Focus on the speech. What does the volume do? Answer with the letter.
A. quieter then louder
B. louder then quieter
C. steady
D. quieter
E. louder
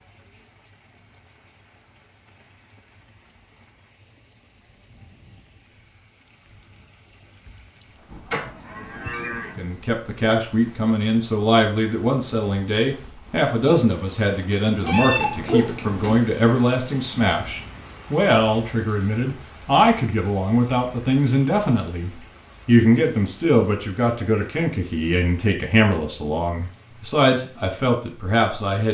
C.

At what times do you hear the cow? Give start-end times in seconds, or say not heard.
8.1-9.7.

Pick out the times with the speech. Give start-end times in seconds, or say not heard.
9.6-28.8.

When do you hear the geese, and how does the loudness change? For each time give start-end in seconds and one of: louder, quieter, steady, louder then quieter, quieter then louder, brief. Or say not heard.
not heard.